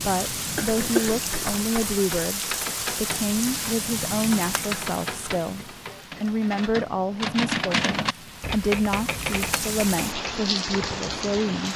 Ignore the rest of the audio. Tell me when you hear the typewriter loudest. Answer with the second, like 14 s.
8 s.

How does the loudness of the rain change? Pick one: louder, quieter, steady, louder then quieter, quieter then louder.
quieter then louder.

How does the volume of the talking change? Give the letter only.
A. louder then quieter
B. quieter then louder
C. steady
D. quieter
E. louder
C.